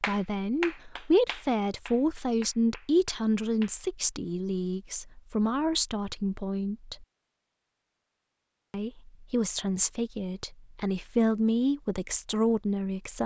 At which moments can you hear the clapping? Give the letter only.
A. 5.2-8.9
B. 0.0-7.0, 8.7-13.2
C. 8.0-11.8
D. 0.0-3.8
D.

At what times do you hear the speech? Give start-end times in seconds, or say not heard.
0.0-7.0, 8.7-13.2.